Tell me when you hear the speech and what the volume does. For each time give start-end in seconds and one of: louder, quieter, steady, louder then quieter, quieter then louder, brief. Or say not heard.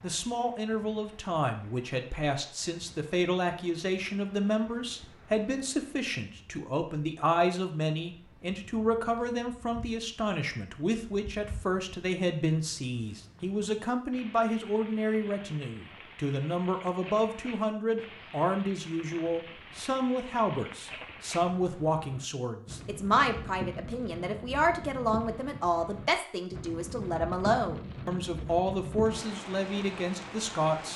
0.0-30.9 steady.